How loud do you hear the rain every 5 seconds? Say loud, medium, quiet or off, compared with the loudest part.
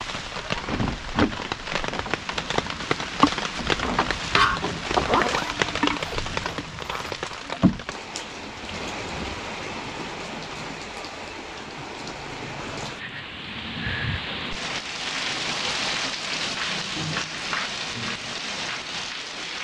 loud, loud, medium, loud.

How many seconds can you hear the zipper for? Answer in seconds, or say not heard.
2 s.